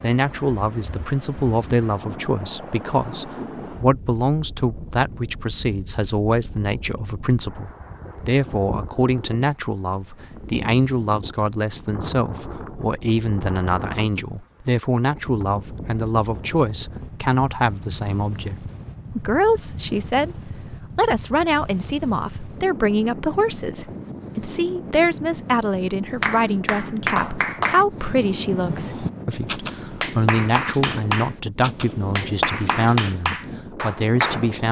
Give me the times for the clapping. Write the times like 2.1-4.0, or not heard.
26.2-34.5.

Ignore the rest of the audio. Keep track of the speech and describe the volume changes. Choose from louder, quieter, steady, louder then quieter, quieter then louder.
steady.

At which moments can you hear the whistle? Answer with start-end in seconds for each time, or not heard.
not heard.